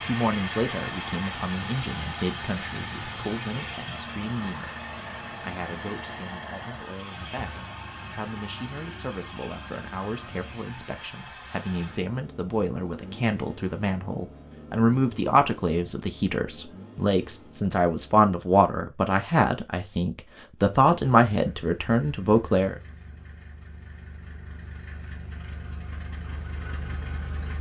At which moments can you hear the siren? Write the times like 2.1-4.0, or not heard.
not heard.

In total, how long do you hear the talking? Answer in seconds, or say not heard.
23 s.